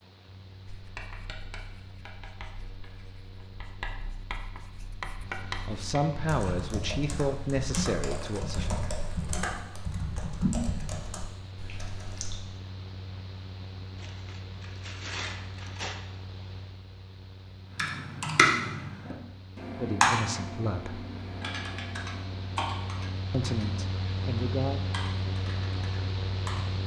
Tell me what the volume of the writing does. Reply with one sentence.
The volume of the writing goes up.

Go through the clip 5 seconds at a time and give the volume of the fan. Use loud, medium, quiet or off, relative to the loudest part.
quiet, quiet, medium, quiet, loud, loud.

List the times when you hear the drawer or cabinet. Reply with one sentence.
The drawer or cabinet can't be heard in this clip.